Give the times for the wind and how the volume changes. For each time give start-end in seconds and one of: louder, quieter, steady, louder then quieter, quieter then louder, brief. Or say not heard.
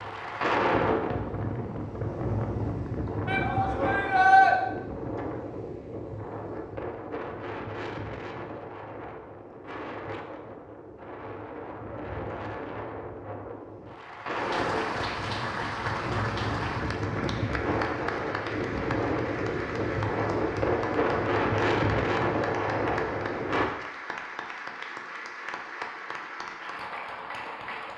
0.0-23.7 quieter then louder.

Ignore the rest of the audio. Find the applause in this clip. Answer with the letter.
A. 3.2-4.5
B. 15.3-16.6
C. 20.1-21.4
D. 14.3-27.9
D.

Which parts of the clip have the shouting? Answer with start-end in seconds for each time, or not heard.
3.2-4.5.